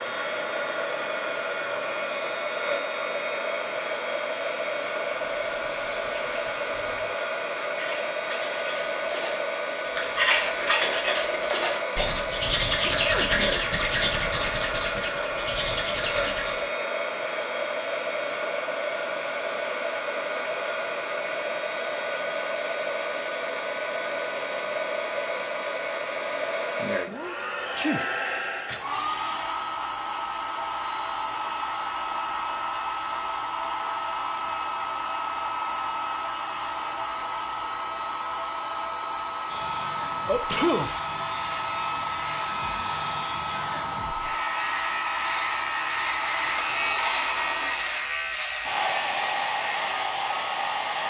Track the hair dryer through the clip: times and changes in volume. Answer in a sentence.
The hair dryer can be heard from 0.0 to 51.0 s, at a steady volume.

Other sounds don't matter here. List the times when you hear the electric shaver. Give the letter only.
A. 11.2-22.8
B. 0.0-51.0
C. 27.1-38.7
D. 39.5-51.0
D.